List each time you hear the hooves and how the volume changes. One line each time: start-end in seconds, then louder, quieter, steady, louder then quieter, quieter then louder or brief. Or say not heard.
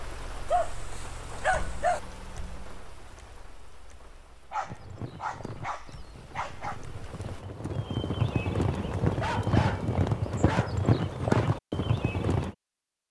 4.6-12.6 louder.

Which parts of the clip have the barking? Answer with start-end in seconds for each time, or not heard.
0.5-2.0, 4.5-6.8, 9.2-11.5.